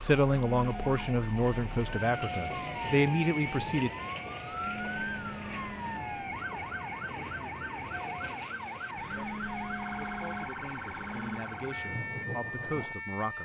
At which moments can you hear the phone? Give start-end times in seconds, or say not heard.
0.2-1.1, 4.5-6.1, 8.9-11.4.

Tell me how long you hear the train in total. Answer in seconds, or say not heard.
13 s.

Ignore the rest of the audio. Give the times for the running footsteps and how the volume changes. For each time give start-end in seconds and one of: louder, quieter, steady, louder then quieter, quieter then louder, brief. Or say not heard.
not heard.